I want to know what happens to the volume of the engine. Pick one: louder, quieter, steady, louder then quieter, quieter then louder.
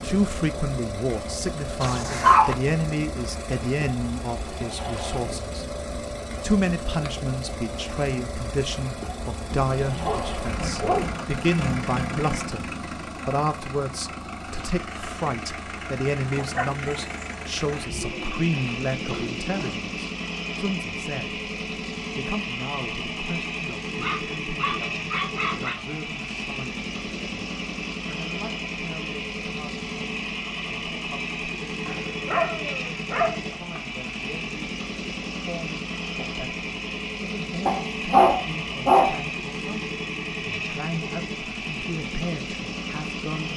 steady.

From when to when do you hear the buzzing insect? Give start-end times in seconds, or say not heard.
not heard.